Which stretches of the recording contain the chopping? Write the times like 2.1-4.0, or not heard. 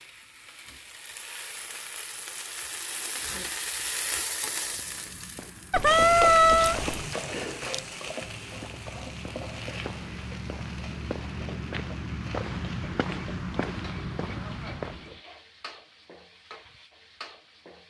not heard.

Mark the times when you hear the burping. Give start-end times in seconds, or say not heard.
5.7-7.1.